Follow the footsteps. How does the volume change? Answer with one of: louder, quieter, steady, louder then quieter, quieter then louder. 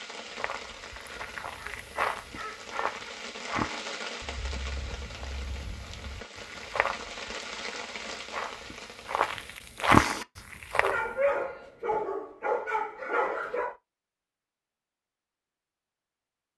quieter then louder.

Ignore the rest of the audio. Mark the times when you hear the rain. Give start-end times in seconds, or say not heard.
0.0-9.6.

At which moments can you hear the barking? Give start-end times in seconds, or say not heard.
1.6-3.0, 10.8-13.8.